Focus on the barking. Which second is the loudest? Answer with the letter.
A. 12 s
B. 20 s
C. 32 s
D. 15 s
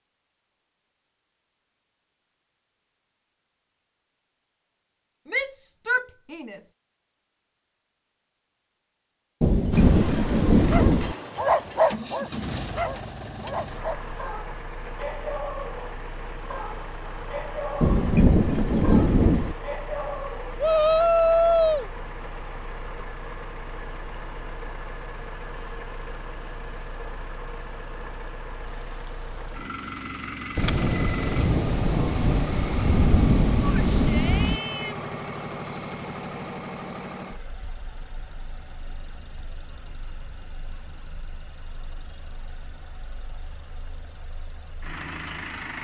A.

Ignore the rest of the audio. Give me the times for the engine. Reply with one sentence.
The engine can be heard from 9.7 to 45.7 s.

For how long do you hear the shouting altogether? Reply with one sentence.
You can hear the shouting for 4 seconds altogether.